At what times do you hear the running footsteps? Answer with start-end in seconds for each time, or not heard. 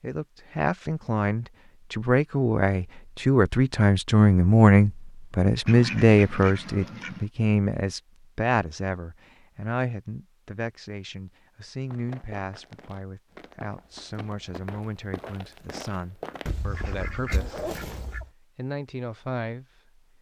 11.9-17.1.